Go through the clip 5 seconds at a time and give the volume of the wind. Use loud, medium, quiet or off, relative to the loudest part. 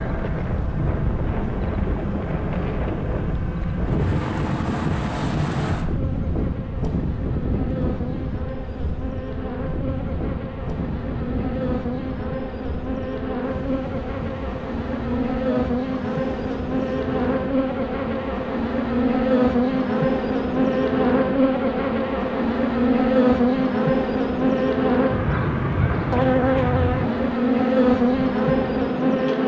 loud, loud, medium, medium, quiet, quiet.